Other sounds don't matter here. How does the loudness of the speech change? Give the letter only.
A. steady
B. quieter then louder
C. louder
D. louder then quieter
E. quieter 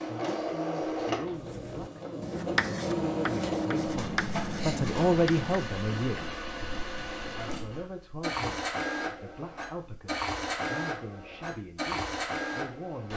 D.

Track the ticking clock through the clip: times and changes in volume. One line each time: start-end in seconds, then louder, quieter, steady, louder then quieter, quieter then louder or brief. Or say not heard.
not heard.